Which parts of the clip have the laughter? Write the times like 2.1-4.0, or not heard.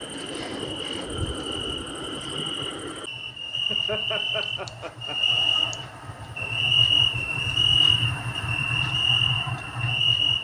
3.6-5.4.